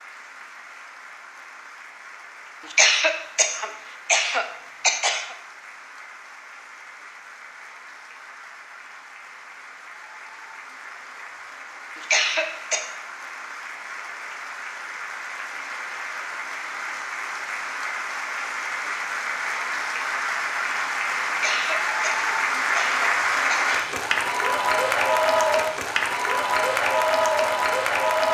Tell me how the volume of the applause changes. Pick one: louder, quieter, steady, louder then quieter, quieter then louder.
louder.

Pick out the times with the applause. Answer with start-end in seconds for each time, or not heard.
0.0-28.3.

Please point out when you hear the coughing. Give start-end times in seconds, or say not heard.
2.7-5.3, 12.0-12.9, 21.4-24.0.